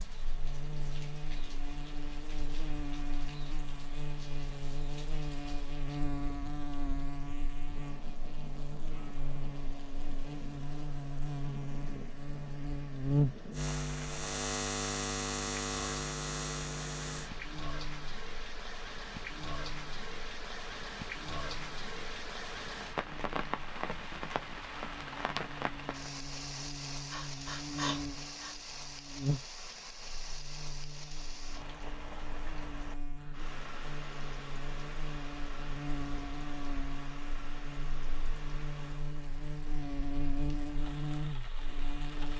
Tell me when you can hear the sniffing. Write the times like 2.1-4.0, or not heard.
27.1-28.6.